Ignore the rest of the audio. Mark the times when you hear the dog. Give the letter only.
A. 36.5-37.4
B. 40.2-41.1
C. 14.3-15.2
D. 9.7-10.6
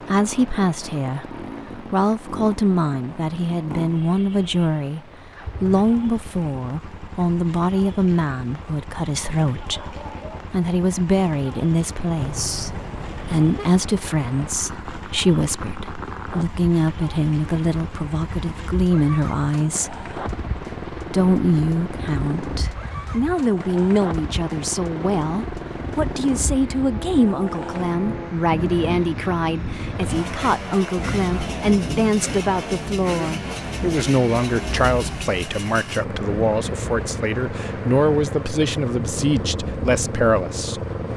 D.